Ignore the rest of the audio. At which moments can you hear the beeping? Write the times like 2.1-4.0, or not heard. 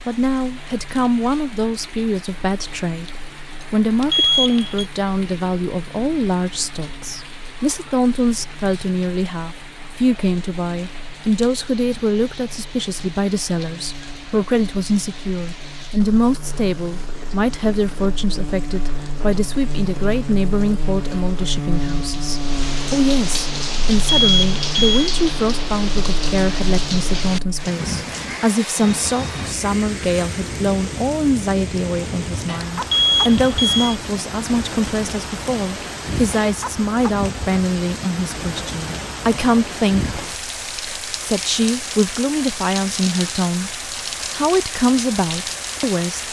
4.0-4.8, 24.0-25.1, 32.8-34.0.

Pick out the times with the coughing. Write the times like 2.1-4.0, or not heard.
not heard.